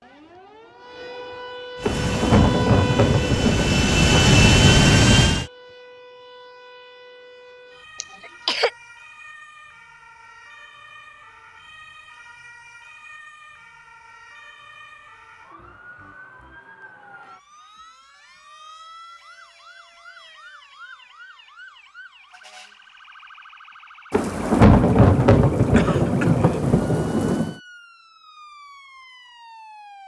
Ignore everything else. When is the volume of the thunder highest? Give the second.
25 s.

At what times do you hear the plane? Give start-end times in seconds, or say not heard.
1.8-5.5.